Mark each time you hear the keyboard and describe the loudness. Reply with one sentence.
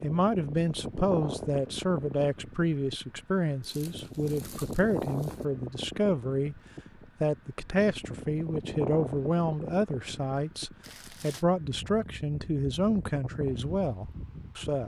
You can't hear the keyboard here.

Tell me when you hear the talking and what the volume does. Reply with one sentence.
The talking can be heard from 0.0 to 6.5 s, at a steady volume; and from 7.2 to 14.8 s, at a steady volume.